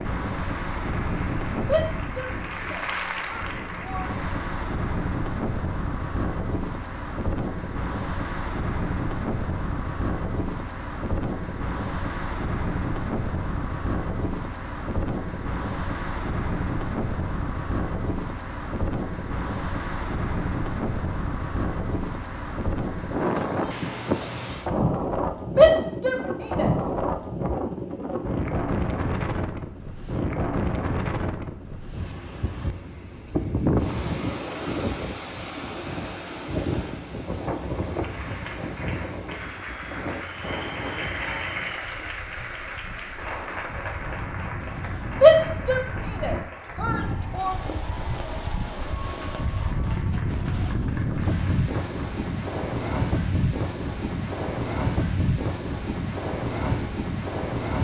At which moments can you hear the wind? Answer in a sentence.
The wind can be heard from 0.0 to 57.7 s.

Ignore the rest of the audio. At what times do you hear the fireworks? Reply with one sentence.
The fireworks can't be heard in this clip.